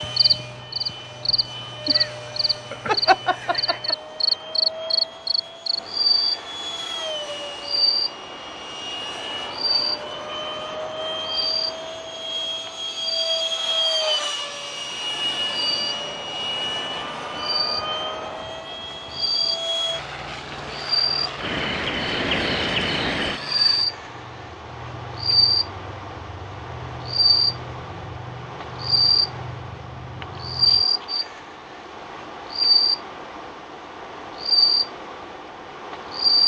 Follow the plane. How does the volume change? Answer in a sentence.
The loudness of the plane goes up, then down.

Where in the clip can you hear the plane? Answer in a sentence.
The plane can be heard from 0.0 to 30.9 s.